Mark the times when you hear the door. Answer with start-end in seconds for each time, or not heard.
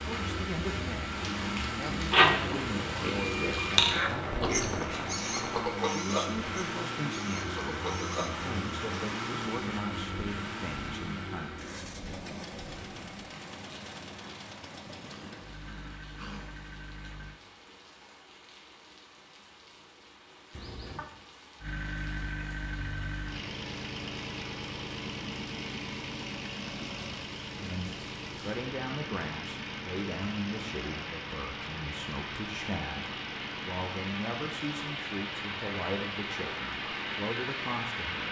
not heard.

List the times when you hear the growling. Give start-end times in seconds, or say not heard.
15.1-16.6, 20.5-21.1.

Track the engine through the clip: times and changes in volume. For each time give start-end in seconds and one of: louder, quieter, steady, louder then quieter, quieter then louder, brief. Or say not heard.
0.0-17.4 quieter
21.6-38.2 quieter.